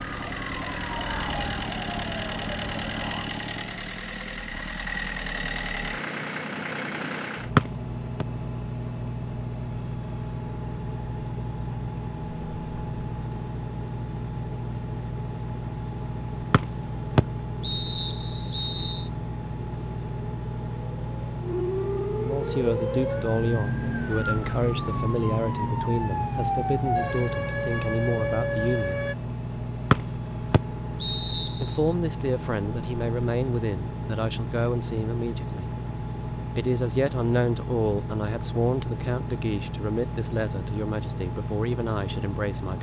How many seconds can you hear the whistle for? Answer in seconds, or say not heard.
5 s.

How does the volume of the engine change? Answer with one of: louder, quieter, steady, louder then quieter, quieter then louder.
steady.